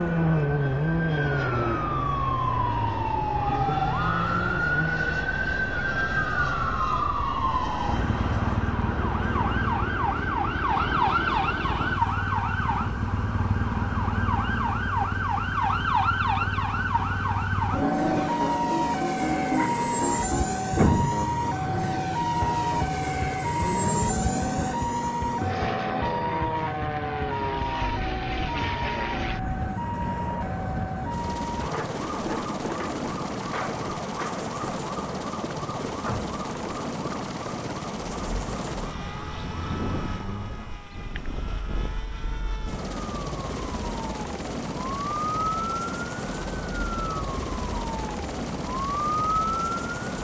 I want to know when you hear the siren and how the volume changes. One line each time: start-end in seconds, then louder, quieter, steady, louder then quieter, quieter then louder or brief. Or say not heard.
0.0-50.0 quieter.